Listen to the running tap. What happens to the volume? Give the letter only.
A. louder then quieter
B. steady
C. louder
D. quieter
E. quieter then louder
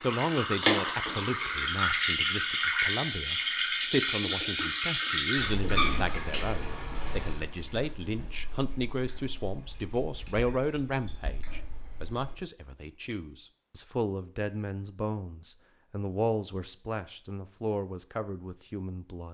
D.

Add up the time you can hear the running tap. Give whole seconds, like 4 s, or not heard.
12 s.